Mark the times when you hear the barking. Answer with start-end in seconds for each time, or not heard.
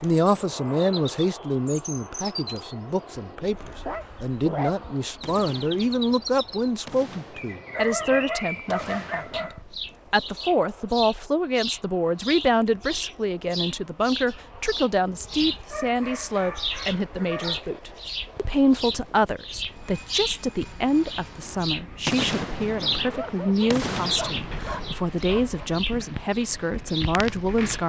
3.9-5.2, 7.7-9.6, 15.7-17.6, 23.1-25.6.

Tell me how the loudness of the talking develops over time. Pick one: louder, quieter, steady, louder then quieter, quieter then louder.
steady.